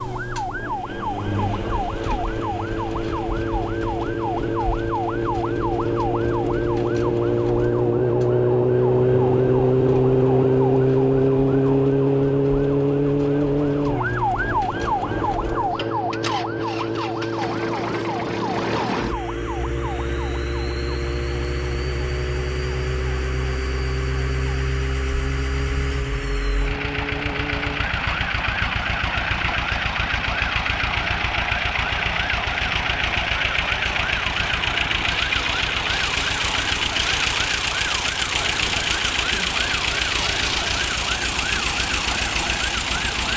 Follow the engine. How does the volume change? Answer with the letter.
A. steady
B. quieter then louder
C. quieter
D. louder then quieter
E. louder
E.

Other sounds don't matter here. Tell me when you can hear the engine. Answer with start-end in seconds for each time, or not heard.
0.0-43.3.